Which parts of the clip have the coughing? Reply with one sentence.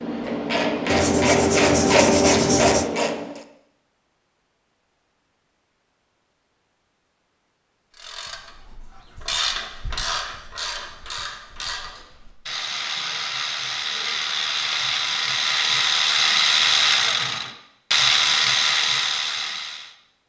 The coughing can't be heard in this clip.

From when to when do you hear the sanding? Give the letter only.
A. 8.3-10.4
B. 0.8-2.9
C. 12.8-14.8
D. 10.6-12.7
B.